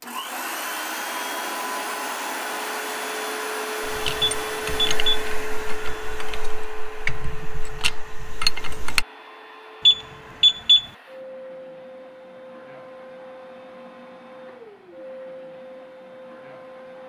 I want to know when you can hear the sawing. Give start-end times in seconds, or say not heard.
not heard.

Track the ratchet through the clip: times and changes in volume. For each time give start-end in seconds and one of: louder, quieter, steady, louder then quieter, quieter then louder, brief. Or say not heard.
3.8-9.1 quieter then louder.